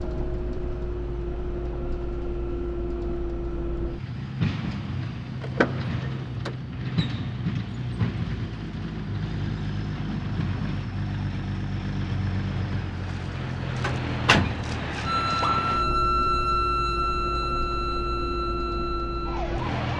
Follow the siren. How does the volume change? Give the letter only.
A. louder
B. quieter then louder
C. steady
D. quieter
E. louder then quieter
D.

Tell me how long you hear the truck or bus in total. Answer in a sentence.
The truck or bus can be heard for 20 seconds in total.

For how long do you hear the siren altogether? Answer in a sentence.
You can hear the siren for 5 seconds altogether.